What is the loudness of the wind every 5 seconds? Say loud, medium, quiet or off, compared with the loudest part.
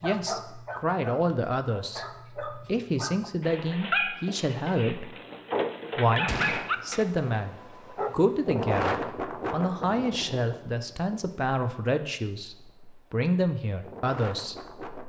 off, loud, medium.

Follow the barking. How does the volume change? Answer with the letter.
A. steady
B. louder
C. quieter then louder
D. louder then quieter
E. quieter
B.